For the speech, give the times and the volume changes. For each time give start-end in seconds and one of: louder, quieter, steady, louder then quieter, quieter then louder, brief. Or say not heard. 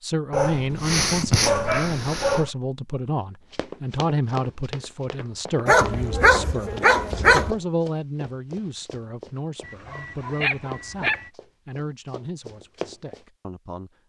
0.0-14.0 quieter.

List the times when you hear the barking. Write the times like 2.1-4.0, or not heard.
0.3-2.5, 5.7-7.5, 9.7-11.3.